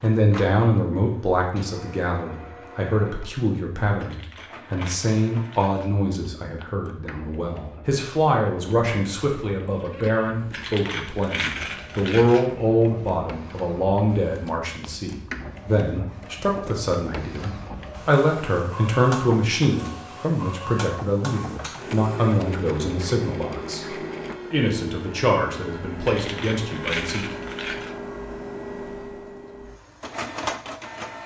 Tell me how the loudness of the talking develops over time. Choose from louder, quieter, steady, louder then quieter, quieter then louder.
steady.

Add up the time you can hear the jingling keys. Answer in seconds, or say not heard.
6 s.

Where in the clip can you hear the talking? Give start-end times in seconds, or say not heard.
0.0-27.2.